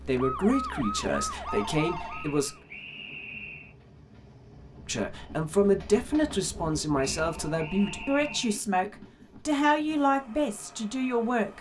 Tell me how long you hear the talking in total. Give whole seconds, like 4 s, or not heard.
9 s.